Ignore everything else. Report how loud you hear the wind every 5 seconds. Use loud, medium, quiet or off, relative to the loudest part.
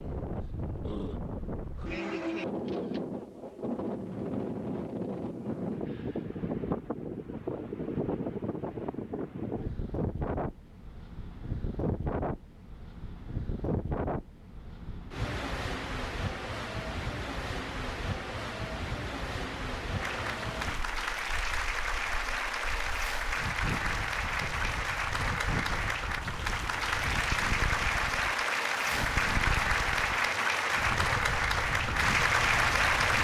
loud, loud, loud, loud, medium, medium, medium.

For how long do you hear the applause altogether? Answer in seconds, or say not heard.
13 s.